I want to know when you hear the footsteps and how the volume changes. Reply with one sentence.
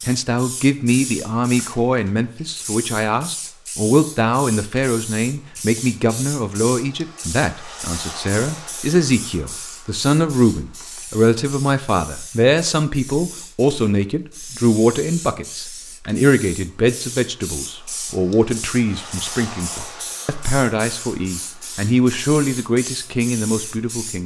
You can't hear the footsteps here.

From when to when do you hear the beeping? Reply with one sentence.
You can't hear the beeping here.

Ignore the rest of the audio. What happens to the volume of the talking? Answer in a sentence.
The volume of the talking stays about the same.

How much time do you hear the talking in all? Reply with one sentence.
The talking can be heard for 24 seconds in total.